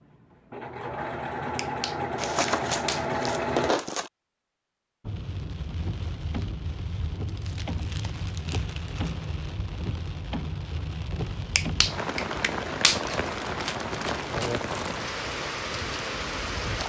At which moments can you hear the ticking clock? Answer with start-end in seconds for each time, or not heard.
not heard.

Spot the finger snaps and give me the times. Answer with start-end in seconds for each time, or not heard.
1.6-3.2, 11.6-13.2.